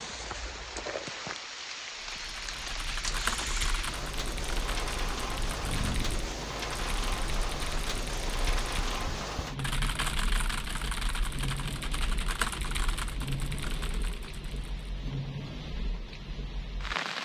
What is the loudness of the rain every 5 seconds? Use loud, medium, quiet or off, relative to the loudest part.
loud, loud, medium, loud.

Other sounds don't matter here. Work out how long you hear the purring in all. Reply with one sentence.
The purring can't be heard in this clip.